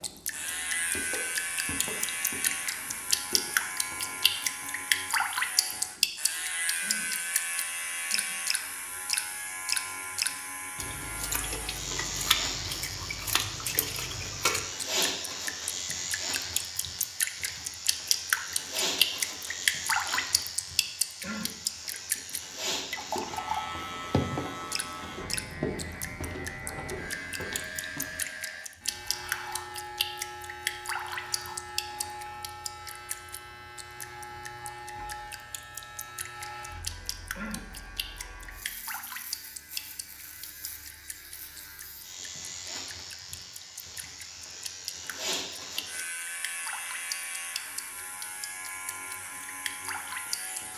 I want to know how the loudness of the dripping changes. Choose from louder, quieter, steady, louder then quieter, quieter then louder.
quieter.